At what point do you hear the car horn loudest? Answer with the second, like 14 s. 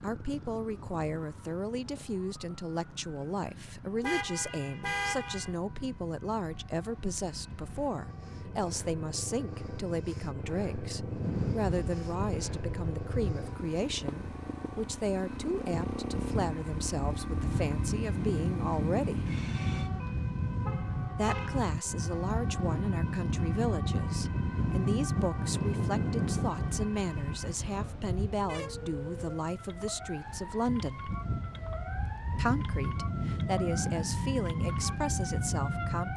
5 s.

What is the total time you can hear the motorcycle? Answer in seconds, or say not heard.
20 s.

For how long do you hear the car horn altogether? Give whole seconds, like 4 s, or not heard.
4 s.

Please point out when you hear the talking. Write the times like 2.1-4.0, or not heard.
0.0-19.3, 21.1-31.1, 32.4-36.1.